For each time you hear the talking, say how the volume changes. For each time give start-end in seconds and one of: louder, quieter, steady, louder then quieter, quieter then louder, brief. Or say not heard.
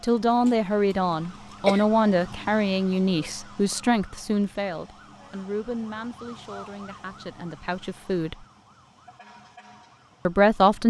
0.0-8.4 quieter
10.2-10.8 brief.